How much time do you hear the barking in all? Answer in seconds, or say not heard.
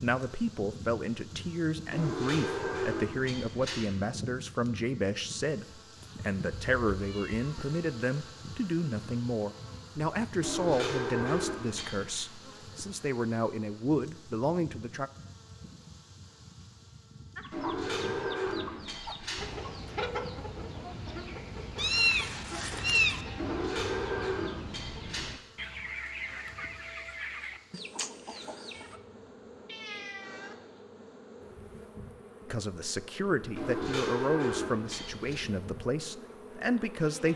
not heard.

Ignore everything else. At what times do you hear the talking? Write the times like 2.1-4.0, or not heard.
0.0-15.1, 32.5-37.3.